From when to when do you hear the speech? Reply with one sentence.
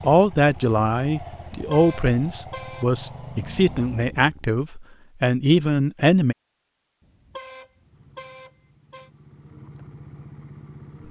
The speech can be heard from 0.0 to 6.3 s.